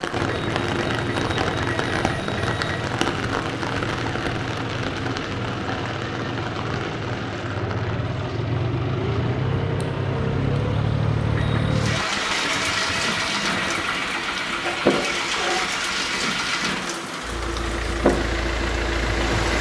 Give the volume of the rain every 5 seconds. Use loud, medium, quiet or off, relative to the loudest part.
loud, medium, loud, loud.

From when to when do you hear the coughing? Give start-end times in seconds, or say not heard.
14.6-15.6.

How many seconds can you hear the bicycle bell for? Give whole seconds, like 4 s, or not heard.
5 s.